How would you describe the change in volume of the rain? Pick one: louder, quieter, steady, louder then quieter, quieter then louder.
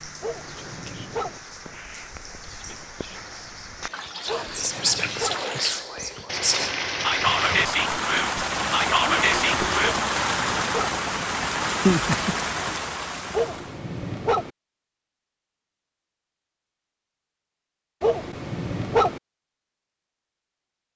louder.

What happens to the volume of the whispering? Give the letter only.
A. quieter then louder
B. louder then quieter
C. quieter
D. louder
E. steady
D.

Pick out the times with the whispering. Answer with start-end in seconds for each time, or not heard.
0.5-9.9.